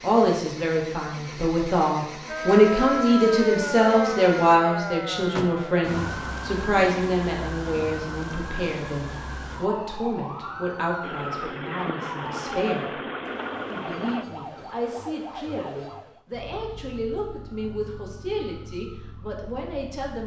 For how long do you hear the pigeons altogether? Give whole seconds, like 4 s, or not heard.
not heard.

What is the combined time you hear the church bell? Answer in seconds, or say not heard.
not heard.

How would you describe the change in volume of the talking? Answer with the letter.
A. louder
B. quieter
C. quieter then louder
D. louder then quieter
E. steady
B.